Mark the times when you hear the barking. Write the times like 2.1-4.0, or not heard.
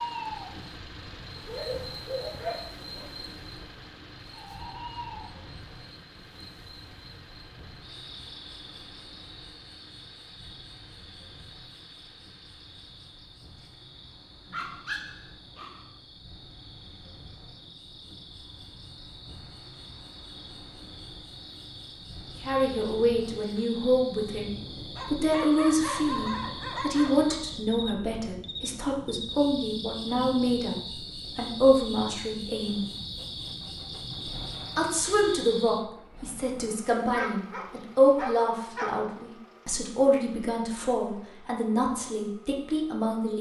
1.4-3.1, 14.4-15.9, 24.9-27.4, 37.1-39.0.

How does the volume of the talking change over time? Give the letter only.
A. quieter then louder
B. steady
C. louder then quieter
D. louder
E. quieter
B.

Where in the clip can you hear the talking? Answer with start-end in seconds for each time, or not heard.
22.4-32.9, 34.8-43.3.